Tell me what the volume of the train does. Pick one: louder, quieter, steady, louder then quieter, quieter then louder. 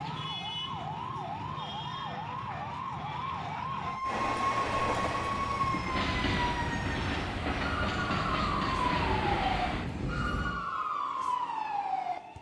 steady.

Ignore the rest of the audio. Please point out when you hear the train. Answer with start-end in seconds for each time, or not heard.
4.0-10.6.